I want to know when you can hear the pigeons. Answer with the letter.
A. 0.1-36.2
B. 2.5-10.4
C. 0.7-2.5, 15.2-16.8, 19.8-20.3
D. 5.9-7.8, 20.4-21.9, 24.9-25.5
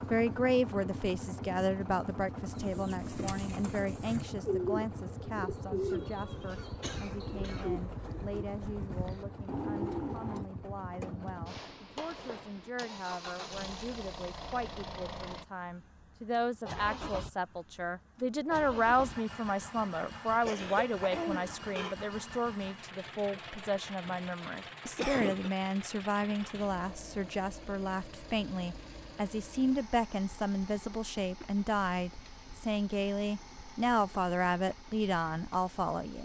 B.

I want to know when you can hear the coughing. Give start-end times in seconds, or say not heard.
5.9-7.8, 20.4-21.9, 24.9-25.5.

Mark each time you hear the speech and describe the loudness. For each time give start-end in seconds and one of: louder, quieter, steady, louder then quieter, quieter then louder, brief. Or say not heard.
0.1-36.2 quieter then louder.